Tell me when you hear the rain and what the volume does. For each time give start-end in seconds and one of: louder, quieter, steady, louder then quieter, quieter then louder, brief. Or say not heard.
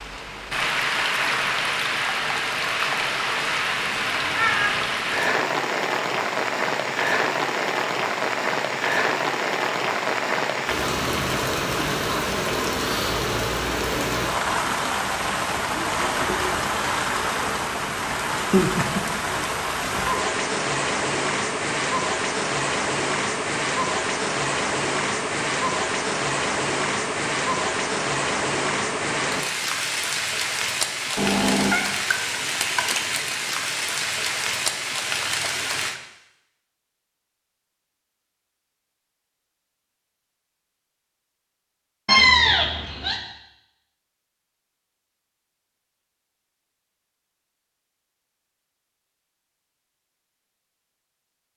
0.0-36.0 steady.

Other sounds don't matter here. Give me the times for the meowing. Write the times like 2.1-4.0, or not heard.
4.2-4.8, 31.1-31.9, 42.0-43.1.